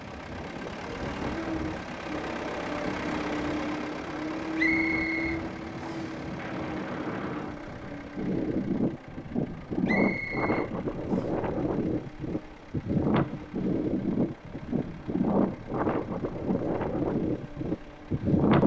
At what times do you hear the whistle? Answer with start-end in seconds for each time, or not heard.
4.5-6.2, 9.8-11.3.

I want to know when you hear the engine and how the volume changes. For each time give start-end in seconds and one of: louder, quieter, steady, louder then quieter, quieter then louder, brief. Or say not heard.
0.0-18.6 quieter.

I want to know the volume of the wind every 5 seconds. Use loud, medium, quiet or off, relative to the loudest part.
quiet, medium, loud, loud.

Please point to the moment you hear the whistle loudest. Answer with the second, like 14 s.
5 s.